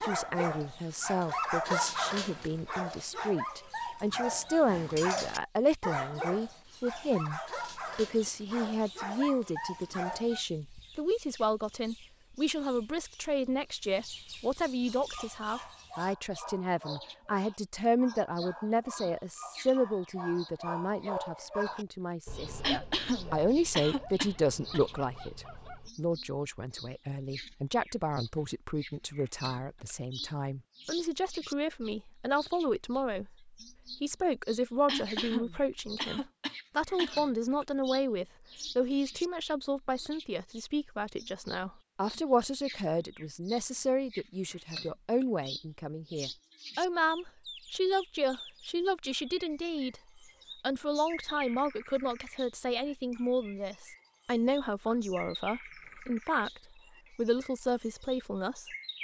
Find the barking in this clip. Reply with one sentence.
The barking can be heard from 0.0 to 10.4 s and from 14.8 to 25.9 s.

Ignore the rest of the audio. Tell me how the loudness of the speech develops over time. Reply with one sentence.
The volume of the speech stays about the same.